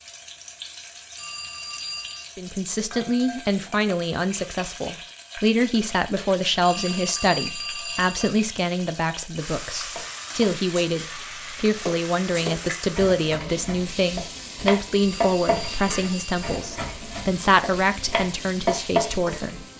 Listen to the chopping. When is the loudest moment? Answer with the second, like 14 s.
19 s.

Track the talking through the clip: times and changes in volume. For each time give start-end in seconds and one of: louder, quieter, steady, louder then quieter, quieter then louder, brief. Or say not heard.
2.4-19.6 steady.